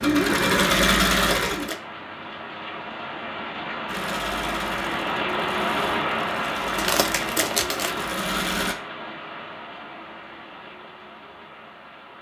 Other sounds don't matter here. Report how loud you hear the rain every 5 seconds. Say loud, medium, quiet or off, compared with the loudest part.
loud, loud, quiet.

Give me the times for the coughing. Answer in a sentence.
You can't hear the coughing here.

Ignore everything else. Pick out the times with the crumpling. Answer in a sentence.
The crumpling can be heard from 1.1 to 1.8 s and from 6.8 to 8.0 s.